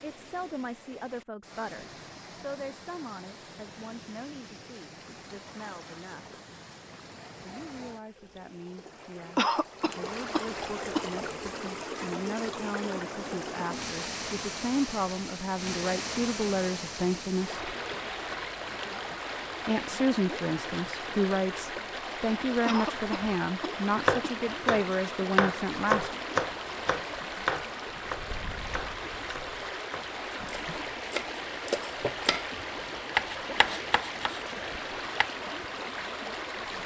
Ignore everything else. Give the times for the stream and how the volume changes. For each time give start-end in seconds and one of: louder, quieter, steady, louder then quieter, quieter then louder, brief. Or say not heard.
0.0-36.8 louder.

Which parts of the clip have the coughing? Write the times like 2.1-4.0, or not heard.
9.3-11.1, 22.6-24.4.